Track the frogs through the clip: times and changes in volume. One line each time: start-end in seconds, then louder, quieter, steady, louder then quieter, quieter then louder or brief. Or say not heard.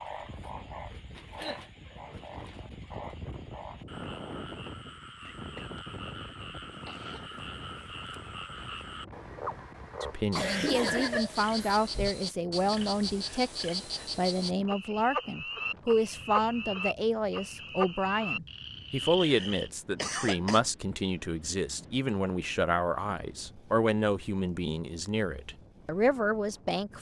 0.0-19.7 louder.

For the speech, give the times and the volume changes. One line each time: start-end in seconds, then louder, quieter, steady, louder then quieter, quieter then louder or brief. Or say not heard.
10.0-26.9 steady.